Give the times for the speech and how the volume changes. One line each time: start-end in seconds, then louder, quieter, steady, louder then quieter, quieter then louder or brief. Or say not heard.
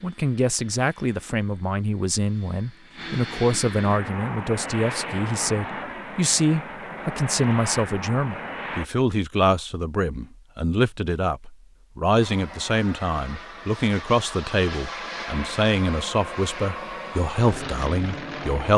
0.0-18.7 steady.